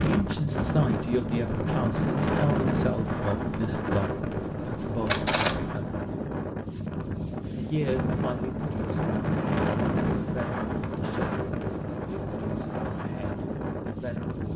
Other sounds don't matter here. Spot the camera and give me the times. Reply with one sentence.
The camera can be heard from 5.0 to 5.7 s.